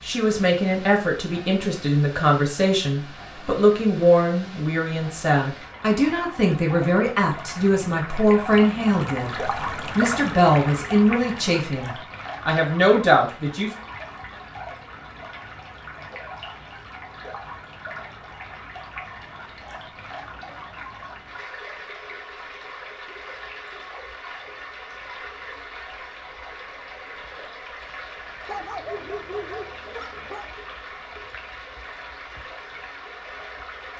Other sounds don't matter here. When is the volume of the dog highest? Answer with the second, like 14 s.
29 s.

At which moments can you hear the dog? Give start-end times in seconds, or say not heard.
28.4-30.6.